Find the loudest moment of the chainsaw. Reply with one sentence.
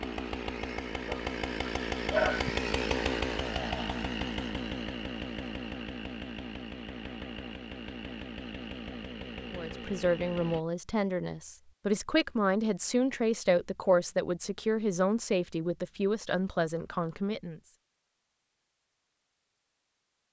The volume of the chainsaw peaks at 3 seconds.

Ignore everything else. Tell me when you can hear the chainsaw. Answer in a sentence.
You can hear the chainsaw from 0.0 to 10.7 s.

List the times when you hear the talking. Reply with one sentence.
The talking can be heard from 9.5 to 17.6 s.